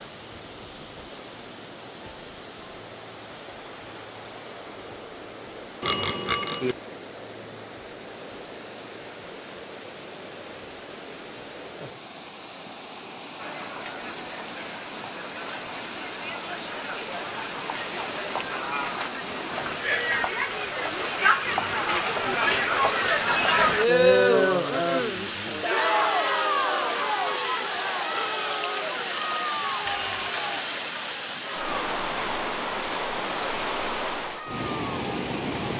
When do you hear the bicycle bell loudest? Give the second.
6 s.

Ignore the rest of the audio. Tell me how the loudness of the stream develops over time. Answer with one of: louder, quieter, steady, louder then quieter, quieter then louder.
louder.